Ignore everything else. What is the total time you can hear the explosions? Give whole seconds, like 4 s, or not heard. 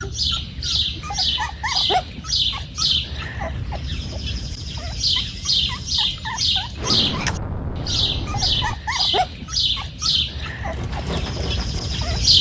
2 s.